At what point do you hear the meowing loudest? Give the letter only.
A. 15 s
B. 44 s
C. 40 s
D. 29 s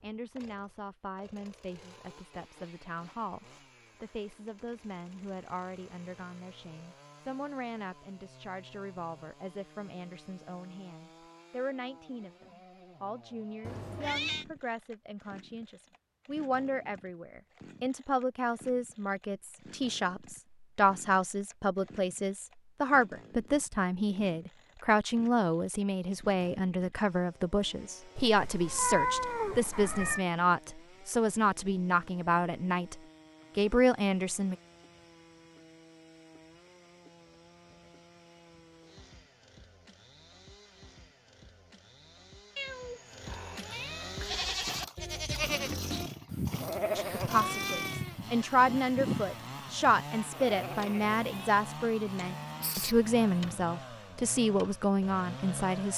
D.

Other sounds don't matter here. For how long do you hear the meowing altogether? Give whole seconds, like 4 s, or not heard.
5 s.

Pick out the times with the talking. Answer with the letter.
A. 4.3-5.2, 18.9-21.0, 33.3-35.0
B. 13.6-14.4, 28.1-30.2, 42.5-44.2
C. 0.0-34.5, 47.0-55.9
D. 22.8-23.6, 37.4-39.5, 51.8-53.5
C.